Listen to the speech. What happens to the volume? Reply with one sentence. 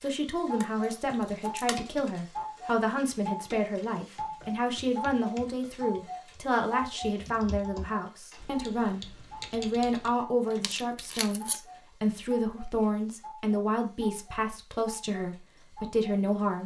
The loudness of the speech stays about the same.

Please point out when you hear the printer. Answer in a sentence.
The printer can't be heard in this clip.